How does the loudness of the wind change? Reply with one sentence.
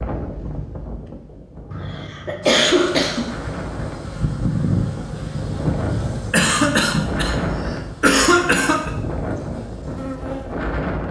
The volume of the wind goes up.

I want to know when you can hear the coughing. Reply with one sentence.
The coughing can be heard from 1.7 to 3.3 s and from 6.3 to 8.9 s.